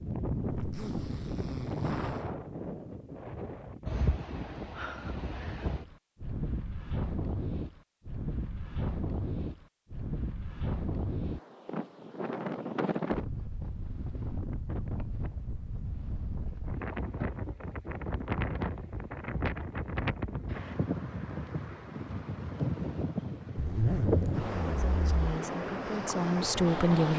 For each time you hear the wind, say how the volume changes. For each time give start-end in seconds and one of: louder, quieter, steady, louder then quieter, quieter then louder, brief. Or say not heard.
0.0-27.1 steady.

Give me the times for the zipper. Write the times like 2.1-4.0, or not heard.
0.5-2.3, 23.6-25.2.